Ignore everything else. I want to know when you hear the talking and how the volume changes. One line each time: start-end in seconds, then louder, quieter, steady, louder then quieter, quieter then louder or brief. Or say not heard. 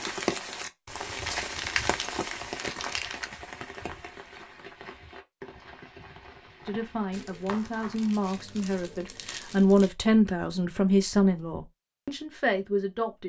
6.7-13.2 louder then quieter.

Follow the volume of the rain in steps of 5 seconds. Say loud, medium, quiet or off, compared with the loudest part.
loud, quiet, off.